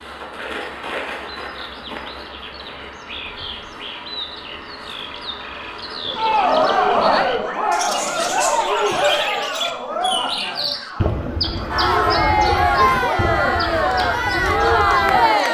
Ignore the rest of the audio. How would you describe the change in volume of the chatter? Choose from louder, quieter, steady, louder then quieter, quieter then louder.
quieter then louder.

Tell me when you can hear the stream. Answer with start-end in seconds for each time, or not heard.
not heard.